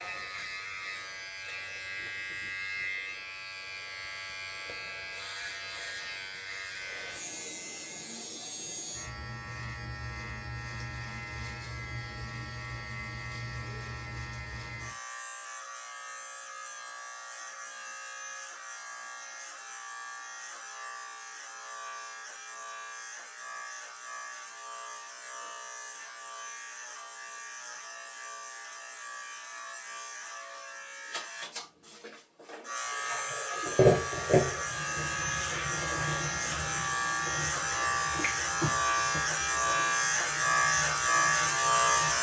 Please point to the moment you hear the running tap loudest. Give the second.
34 s.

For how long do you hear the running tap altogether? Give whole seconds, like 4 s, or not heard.
9 s.